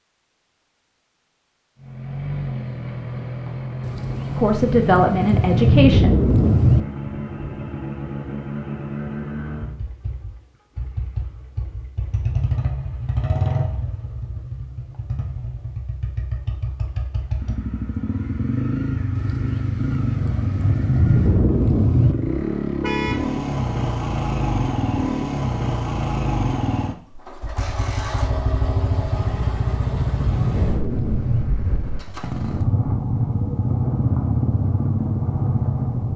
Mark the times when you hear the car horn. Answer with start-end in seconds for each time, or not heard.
22.8-23.3.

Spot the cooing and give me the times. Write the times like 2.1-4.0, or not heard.
not heard.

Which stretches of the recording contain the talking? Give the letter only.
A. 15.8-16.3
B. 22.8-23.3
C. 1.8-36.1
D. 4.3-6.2
D.